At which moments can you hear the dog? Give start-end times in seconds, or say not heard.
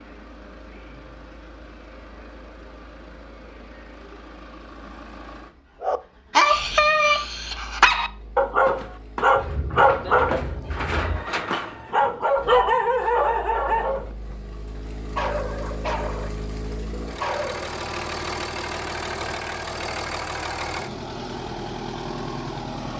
5.8-14.3, 15.2-16.4, 17.2-17.7.